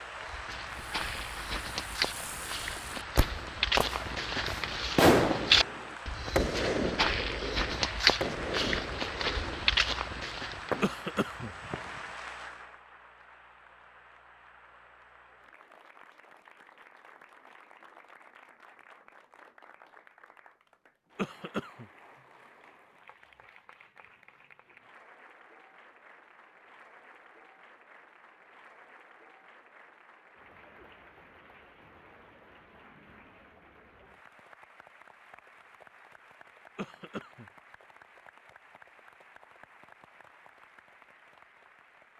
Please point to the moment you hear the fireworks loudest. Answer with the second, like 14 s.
5 s.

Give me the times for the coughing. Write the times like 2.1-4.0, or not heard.
10.8-11.5, 21.1-21.9, 36.8-37.5.